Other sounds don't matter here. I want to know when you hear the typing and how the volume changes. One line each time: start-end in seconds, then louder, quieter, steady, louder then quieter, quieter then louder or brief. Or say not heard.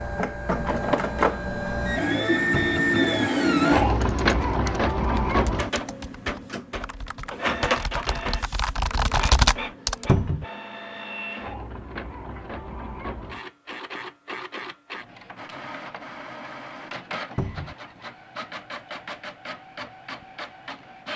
4.0-10.1 louder.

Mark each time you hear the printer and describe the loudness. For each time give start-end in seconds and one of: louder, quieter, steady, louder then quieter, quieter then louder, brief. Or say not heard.
0.0-21.1 quieter.